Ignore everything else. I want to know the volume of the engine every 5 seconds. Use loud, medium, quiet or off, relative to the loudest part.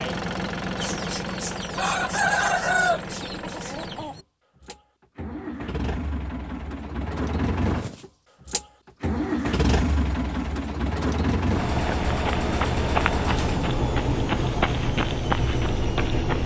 medium, loud, loud, loud.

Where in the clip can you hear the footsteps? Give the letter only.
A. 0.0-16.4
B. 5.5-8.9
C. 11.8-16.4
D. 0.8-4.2
C.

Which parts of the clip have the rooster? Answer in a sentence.
You can hear the rooster from 0.8 to 4.2 s.